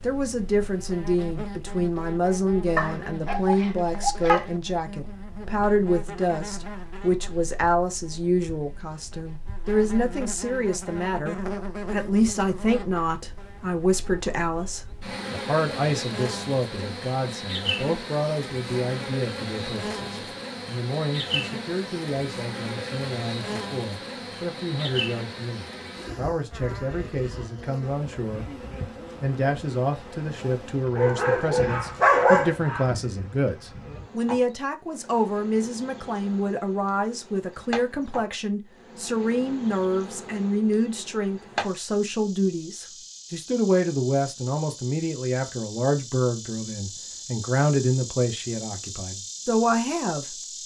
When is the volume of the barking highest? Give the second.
32 s.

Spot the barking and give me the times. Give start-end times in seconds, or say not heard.
2.8-4.5, 30.9-32.9.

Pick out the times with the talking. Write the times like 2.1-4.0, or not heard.
0.0-28.6, 29.2-50.4.